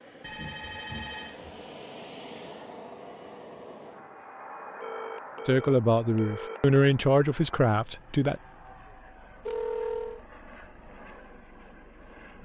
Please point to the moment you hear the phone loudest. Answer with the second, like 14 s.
10 s.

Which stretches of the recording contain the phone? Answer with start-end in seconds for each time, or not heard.
0.2-1.6, 4.8-6.8, 9.4-10.2.